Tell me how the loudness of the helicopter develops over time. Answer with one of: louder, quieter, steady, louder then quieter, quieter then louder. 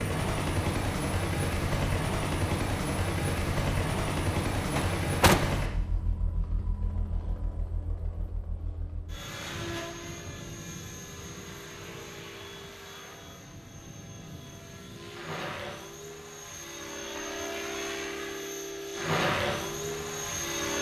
quieter then louder.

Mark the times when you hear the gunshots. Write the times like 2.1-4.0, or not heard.
4.8-5.5.